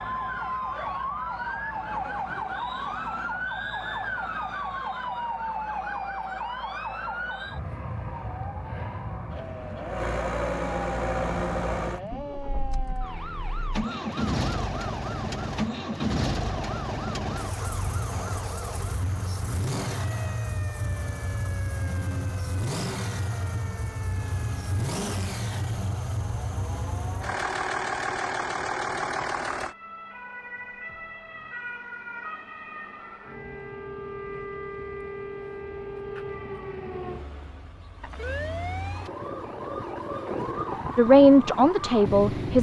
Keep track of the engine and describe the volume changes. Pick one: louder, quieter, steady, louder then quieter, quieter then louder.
louder.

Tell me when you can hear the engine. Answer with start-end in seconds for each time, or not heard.
0.0-29.8.